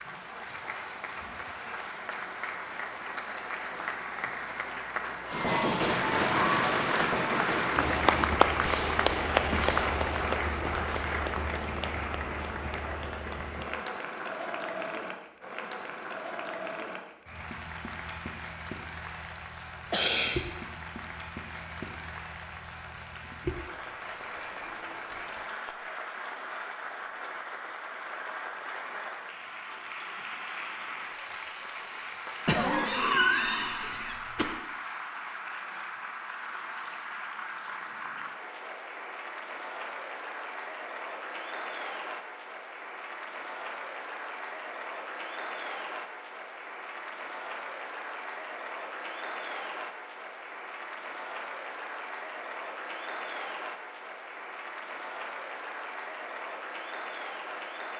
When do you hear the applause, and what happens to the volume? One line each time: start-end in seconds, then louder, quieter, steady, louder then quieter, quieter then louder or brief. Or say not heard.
0.0-57.9 quieter.